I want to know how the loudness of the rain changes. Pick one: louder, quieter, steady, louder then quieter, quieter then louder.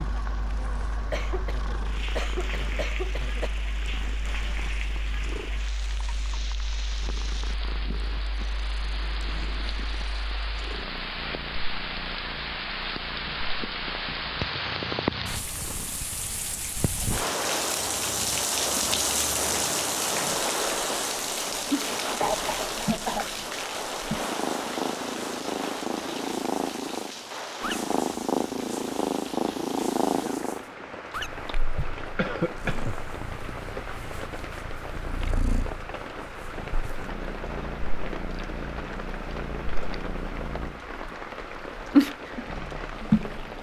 louder then quieter.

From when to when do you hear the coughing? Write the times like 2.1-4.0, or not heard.
1.1-3.5, 22.2-23.2, 32.1-33.0.